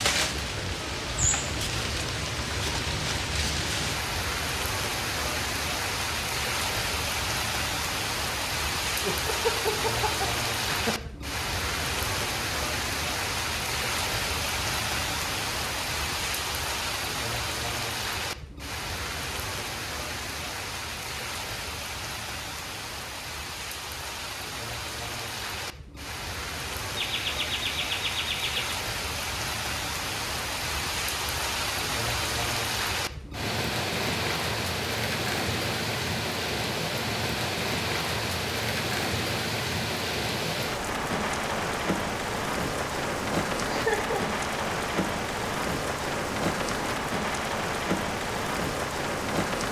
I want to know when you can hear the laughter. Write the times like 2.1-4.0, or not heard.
9.0-11.1, 26.9-28.8, 43.6-44.2.